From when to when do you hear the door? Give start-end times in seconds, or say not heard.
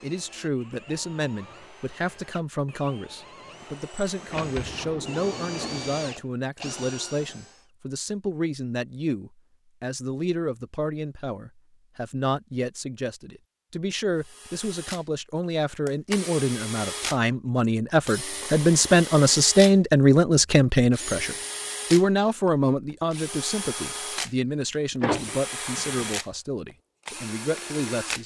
4.3-5.8, 24.7-26.1.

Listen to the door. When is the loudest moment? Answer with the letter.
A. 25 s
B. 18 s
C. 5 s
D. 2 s
A.